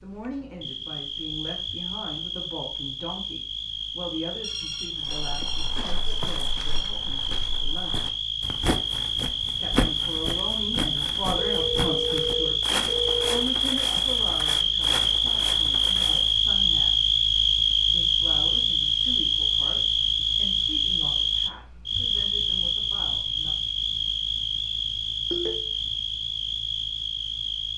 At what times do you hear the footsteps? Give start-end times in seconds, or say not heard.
5.0-16.5.